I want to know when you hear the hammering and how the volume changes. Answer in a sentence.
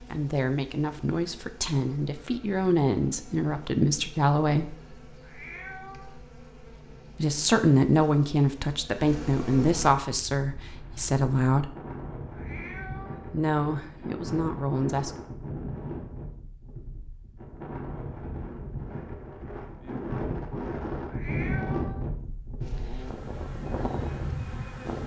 You can't hear the hammering here.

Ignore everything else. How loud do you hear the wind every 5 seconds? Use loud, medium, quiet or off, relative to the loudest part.
off, off, medium, medium, loud.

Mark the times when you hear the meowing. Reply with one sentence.
You can hear the meowing from 5.2 to 6.2 s, from 12.3 to 13.8 s and from 21.1 to 22.1 s.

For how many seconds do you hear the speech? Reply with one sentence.
You can hear the speech for 11 seconds altogether.